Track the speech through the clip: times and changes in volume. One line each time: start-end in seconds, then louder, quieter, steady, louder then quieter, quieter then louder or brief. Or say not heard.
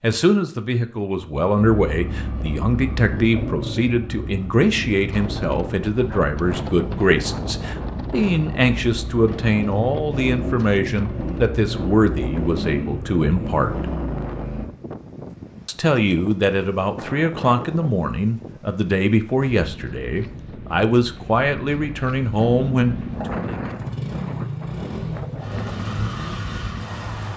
0.0-13.8 steady
15.7-23.6 steady.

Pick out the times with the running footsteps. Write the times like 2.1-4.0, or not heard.
not heard.